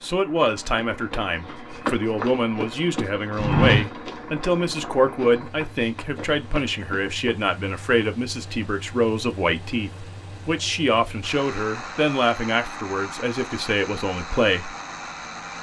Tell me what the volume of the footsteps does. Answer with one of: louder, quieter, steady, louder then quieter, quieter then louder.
louder then quieter.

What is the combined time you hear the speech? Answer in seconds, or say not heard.
15 s.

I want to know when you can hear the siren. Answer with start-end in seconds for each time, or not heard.
not heard.